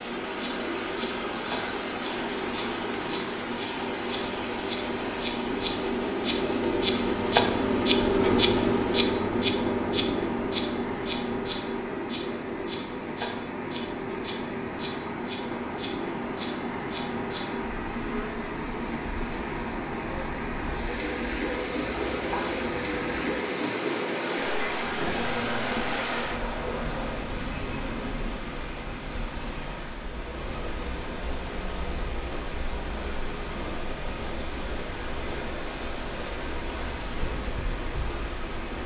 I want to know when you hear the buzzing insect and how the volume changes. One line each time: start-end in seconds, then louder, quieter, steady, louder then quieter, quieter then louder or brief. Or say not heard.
0.0-28.4 louder then quieter.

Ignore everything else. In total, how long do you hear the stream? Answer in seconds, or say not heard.
39 s.